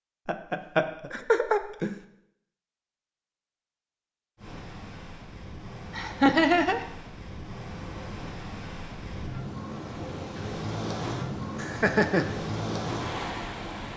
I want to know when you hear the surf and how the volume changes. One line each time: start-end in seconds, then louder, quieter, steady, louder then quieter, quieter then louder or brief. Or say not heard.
4.3-13.9 louder.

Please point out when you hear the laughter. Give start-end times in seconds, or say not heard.
0.2-1.9, 5.9-6.8, 11.6-12.2.